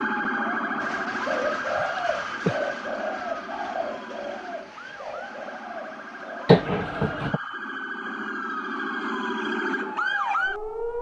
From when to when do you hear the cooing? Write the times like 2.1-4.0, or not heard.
0.8-7.3.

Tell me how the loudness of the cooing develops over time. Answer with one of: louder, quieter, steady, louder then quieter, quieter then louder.
quieter.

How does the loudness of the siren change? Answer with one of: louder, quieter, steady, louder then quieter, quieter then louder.
quieter then louder.